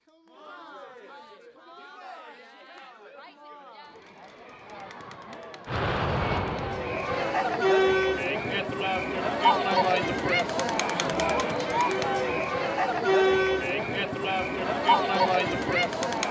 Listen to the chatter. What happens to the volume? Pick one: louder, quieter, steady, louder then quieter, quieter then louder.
louder.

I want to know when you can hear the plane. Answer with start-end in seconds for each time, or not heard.
5.7-7.1.